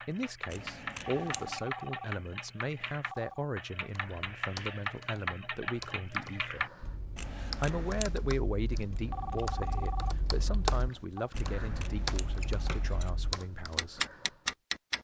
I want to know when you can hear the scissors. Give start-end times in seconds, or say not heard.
0.5-1.6, 7.2-8.1, 11.3-13.1.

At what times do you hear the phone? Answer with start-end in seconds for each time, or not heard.
0.9-3.5, 8.9-11.3.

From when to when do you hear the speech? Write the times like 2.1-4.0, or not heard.
0.1-6.7, 7.3-14.1.